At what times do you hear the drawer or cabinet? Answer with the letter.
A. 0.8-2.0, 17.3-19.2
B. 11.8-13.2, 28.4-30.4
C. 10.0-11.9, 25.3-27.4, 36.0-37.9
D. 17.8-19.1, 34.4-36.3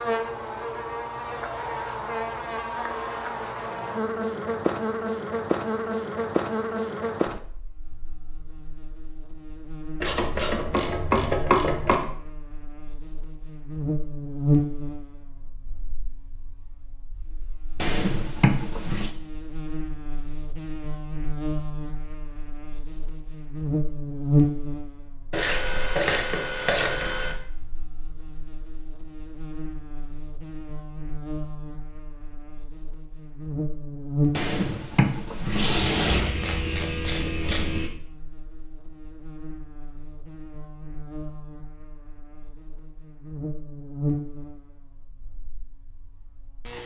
D.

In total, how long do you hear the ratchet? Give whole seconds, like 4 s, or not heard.
6 s.